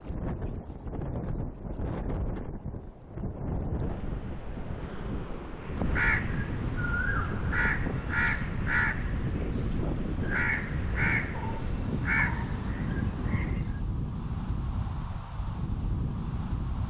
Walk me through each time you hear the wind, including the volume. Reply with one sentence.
You can hear the wind from 0.0 to 16.8 s, at a steady volume.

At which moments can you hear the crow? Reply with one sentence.
You can hear the crow from 5.6 to 13.8 s.